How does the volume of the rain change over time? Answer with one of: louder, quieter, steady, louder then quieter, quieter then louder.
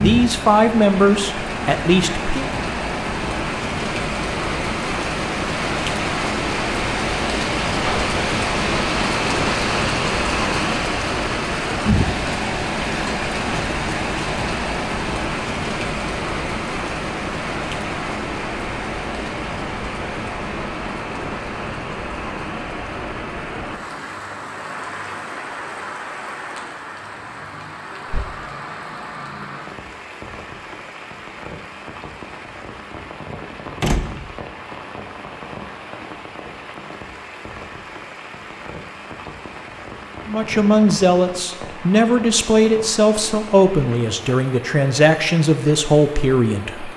quieter.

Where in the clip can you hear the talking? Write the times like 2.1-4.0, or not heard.
0.0-2.5, 40.2-46.9.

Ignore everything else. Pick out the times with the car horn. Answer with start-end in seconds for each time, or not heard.
not heard.